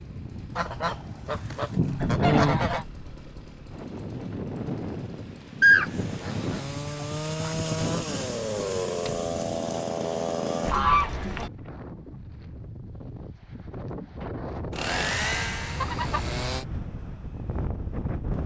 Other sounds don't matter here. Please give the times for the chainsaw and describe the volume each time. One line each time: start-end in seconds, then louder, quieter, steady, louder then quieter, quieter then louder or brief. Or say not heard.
0.0-10.8 louder
14.7-16.6 brief.